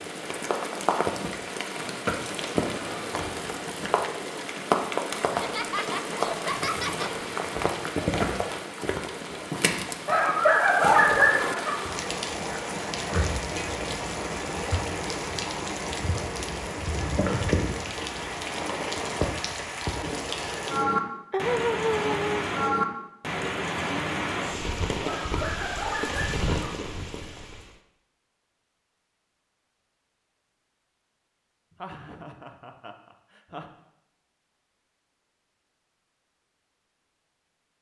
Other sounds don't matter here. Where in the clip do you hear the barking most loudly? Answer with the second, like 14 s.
11 s.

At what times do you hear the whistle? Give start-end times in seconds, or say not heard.
not heard.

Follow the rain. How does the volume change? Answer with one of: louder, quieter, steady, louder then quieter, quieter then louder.
steady.